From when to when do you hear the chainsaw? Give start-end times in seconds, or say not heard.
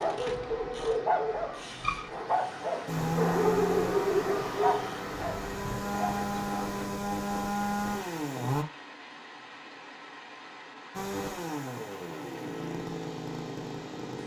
2.9-8.7, 10.9-14.2.